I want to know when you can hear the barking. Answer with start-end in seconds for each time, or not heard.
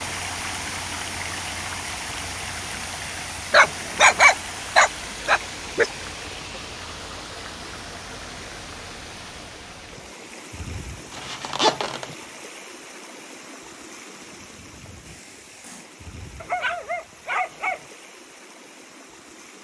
3.5-5.9, 16.4-17.8.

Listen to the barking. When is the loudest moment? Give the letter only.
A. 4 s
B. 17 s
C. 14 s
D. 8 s
A.